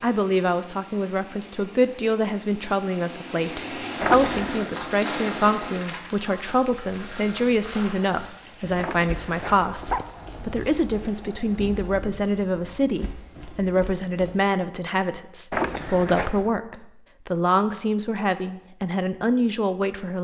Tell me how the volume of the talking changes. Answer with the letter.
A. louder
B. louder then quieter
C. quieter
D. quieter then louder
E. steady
E.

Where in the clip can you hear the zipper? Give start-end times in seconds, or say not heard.
4.0-4.7, 8.8-10.1, 15.5-16.5.